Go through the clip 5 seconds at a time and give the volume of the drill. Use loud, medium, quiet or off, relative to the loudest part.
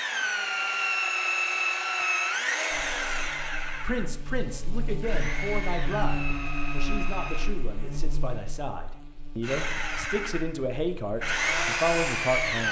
loud, medium, loud.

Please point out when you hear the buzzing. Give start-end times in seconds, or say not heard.
2.7-12.6.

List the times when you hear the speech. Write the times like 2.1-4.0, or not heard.
3.7-12.6.